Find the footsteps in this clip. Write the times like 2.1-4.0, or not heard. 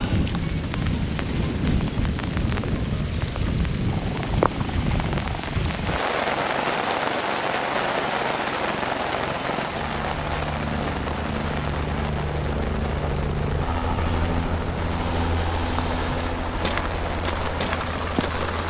14.6-18.5.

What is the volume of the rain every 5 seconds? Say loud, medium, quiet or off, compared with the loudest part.
loud, loud, medium, medium.